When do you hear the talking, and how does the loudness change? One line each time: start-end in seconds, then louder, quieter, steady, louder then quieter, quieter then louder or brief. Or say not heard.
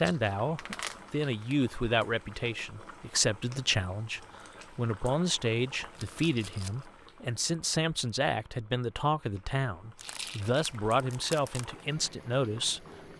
0.0-13.1 steady.